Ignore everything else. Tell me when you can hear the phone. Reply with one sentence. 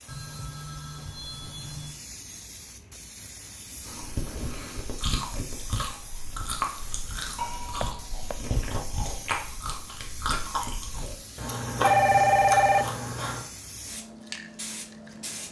You can hear the phone from 0.1 to 1.9 s, from 7.3 to 8.4 s and from 11.8 to 12.8 s.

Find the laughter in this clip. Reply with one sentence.
You can't hear the laughter here.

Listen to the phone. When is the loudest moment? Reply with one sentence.
The volume of the phone peaks at 12 seconds.